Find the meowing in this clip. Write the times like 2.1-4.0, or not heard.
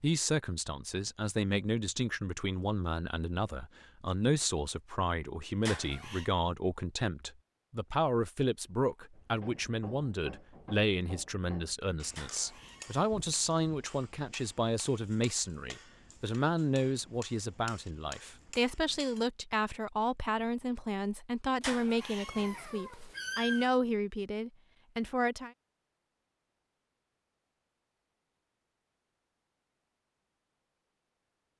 5.7-6.3, 12.2-12.9, 21.6-23.7.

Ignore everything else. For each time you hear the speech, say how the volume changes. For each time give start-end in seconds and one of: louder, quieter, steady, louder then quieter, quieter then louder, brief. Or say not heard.
0.0-25.5 steady.